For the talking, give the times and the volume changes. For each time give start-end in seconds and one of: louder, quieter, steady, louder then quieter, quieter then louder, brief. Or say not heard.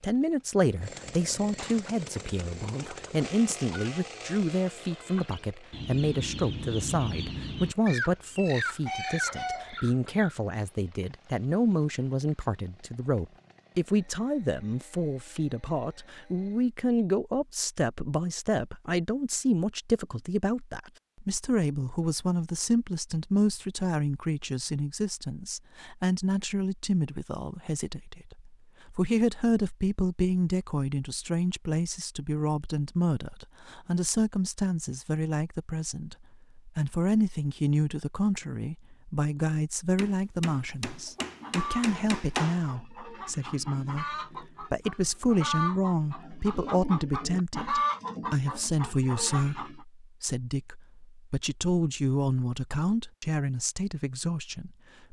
0.0-55.0 steady.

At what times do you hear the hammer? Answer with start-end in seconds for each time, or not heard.
40.0-42.7.